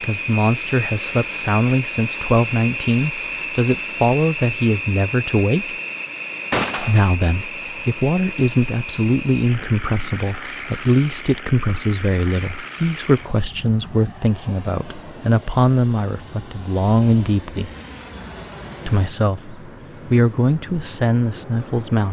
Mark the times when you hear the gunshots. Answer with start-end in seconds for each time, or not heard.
6.5-7.2.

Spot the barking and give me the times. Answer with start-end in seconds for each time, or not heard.
not heard.